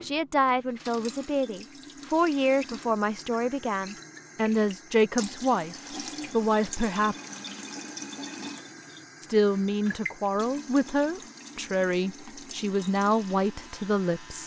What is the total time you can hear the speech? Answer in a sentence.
The speech can be heard for 12 seconds in total.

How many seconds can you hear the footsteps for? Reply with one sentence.
You can't hear the footsteps here.